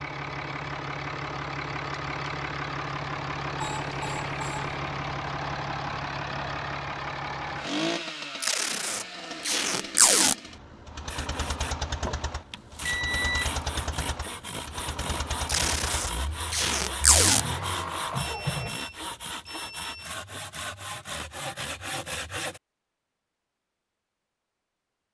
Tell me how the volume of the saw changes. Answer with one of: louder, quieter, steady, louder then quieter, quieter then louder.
steady.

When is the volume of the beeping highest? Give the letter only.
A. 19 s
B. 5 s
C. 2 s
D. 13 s
D.